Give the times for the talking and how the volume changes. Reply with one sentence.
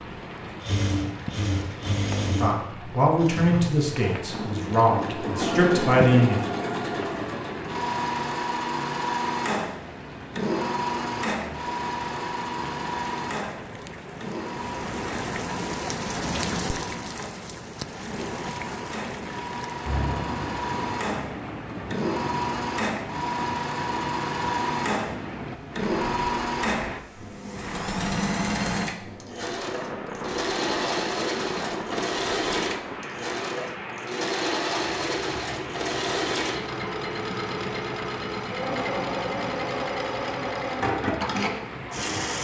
The talking can be heard from 2.4 to 6.4 s, getting quieter then louder.